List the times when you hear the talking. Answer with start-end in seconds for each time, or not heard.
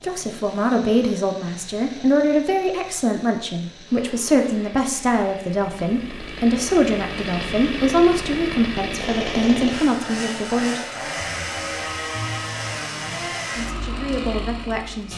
0.0-10.8, 12.8-15.1.